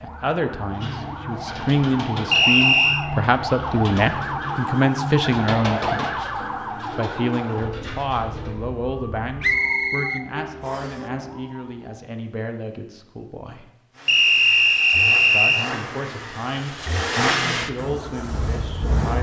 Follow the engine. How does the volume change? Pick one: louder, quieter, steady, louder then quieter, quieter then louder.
louder then quieter.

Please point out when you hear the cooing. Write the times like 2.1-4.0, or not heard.
0.7-8.6.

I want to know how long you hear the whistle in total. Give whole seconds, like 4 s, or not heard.
4 s.